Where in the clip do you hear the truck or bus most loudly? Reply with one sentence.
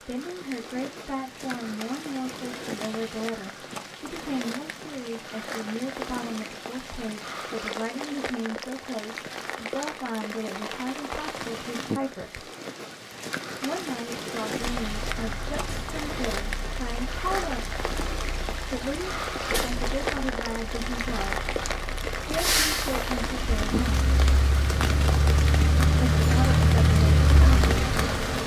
The volume of the truck or bus peaks at 27 seconds.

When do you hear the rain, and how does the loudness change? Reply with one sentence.
You can hear the rain from 0.0 to 28.4 s, getting louder.